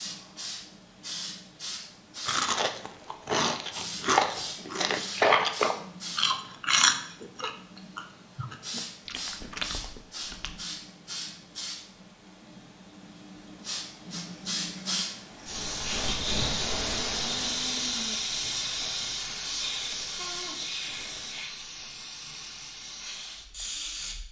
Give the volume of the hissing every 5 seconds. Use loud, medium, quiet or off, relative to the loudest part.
medium, medium, medium, loud, medium.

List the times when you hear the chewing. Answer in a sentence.
You can hear the chewing from 2.2 to 10.6 s.